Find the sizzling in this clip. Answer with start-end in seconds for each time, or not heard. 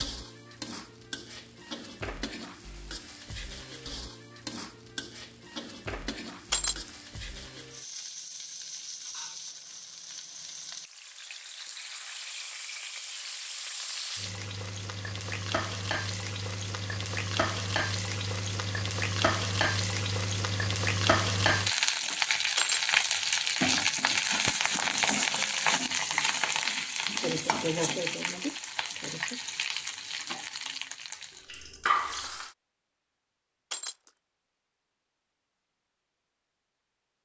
0.0-32.5.